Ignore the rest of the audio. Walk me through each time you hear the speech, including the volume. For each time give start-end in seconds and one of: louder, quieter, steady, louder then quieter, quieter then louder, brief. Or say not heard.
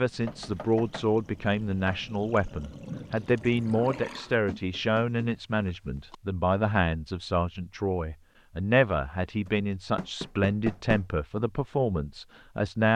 0.0-12.9 steady.